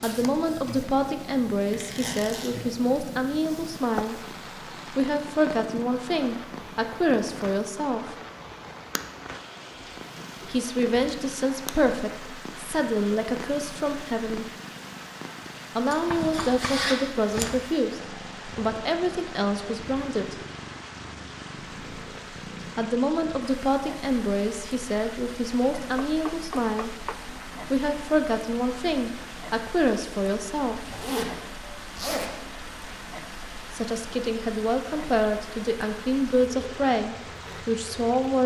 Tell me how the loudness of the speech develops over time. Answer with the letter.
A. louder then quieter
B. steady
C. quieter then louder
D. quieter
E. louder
B.